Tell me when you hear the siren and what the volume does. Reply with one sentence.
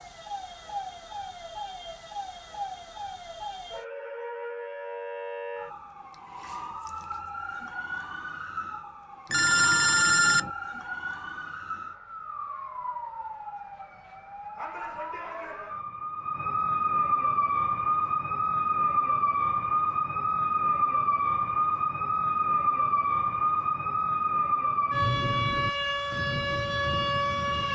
The siren can be heard from 0.0 to 27.7 s, getting louder.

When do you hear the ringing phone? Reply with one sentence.
You can hear the ringing phone from 9.3 to 10.5 s.